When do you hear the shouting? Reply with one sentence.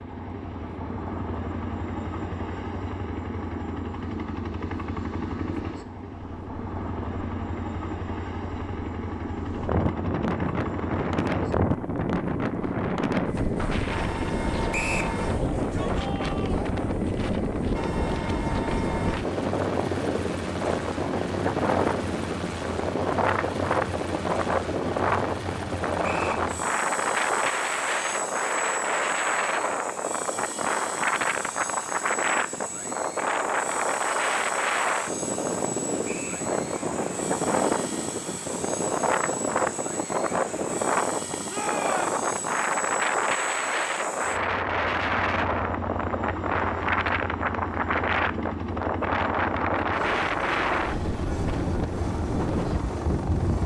You can hear the shouting from 15.3 to 16.8 s and from 41.5 to 42.1 s.